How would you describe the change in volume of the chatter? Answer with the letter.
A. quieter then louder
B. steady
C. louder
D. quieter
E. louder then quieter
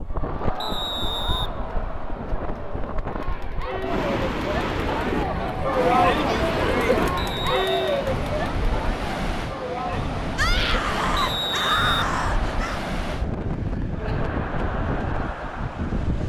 E.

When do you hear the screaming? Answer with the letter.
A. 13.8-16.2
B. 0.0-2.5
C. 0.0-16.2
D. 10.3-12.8
D.